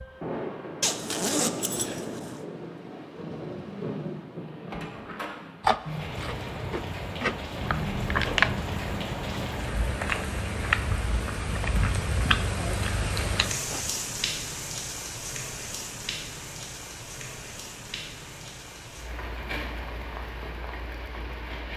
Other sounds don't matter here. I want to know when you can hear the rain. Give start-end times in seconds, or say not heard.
0.0-21.7.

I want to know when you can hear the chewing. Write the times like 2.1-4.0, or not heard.
5.6-13.9.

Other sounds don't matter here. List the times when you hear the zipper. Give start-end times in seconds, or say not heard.
0.8-2.5.